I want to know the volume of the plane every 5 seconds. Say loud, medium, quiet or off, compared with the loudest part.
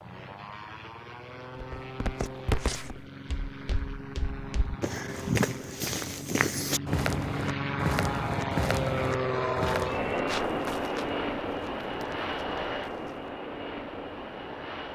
medium, loud, loud.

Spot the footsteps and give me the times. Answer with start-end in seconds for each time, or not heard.
1.6-13.3.